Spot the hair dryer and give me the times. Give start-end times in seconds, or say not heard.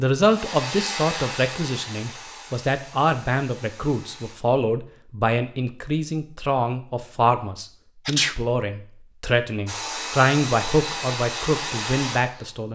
0.1-4.3, 9.7-12.7.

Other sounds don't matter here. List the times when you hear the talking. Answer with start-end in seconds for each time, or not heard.
0.0-12.7.